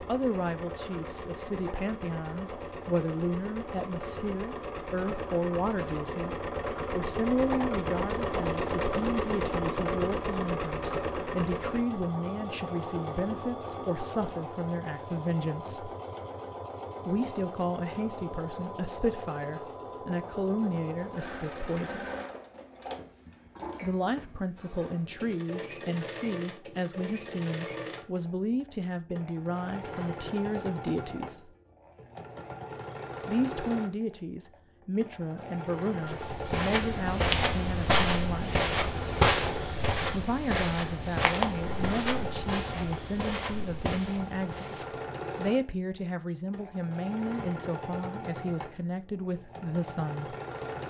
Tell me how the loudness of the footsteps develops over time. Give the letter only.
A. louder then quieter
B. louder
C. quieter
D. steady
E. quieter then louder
C.